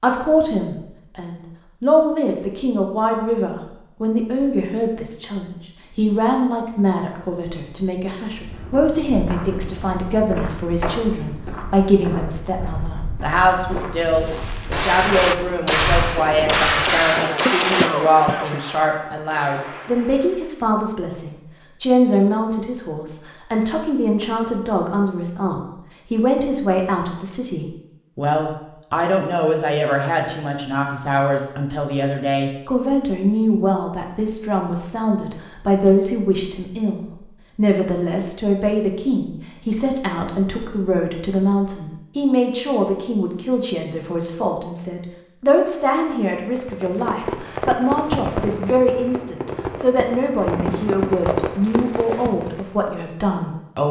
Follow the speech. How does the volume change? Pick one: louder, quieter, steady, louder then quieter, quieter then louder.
steady.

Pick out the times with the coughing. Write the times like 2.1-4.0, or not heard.
17.1-18.6.